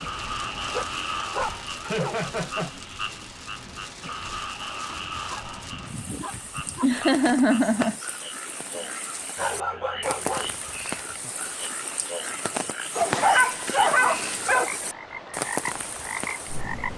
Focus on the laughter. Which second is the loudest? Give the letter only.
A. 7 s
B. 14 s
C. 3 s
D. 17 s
A.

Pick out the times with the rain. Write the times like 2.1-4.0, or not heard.
0.0-16.9.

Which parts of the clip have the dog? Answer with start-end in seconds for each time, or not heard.
0.7-2.2, 4.8-6.8, 9.3-10.6, 12.9-14.7.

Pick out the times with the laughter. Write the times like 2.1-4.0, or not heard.
1.8-2.7, 6.8-8.0, 13.0-13.5.